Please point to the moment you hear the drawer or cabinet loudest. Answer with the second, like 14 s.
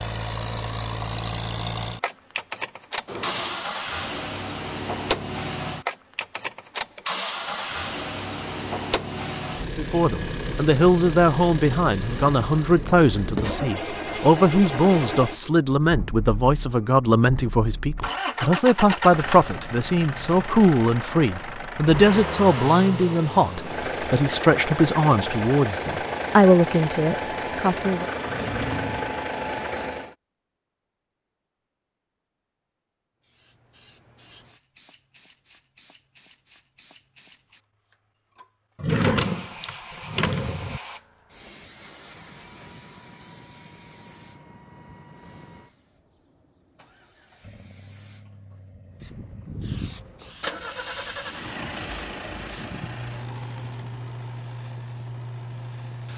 39 s.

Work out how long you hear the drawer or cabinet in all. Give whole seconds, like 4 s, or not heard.
4 s.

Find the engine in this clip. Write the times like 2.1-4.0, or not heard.
0.0-30.1, 42.0-56.1.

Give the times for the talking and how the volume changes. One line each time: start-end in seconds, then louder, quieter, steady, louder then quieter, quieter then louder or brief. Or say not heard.
9.8-28.1 steady.